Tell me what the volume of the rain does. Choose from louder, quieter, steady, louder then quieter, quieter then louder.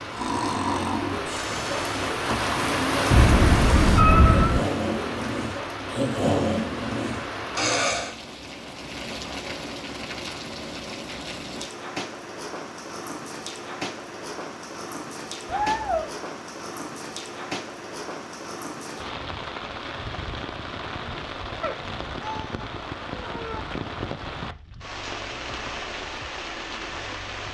quieter.